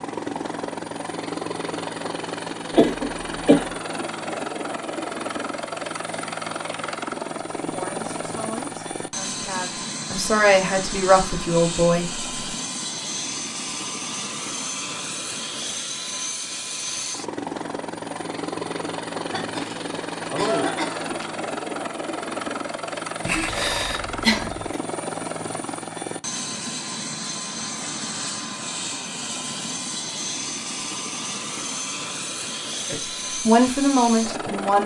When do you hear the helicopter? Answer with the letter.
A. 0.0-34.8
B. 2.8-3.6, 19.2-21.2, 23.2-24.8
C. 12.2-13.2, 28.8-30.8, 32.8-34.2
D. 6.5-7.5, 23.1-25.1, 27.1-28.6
A.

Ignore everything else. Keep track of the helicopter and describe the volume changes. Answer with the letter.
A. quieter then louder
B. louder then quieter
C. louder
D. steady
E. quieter
D.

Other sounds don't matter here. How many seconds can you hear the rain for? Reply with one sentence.
You can't hear the rain here.